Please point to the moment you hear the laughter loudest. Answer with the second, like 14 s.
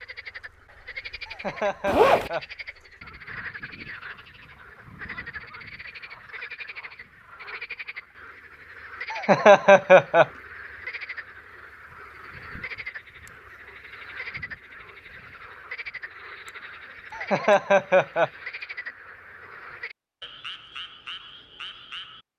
10 s.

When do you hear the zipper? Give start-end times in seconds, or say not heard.
1.9-2.3.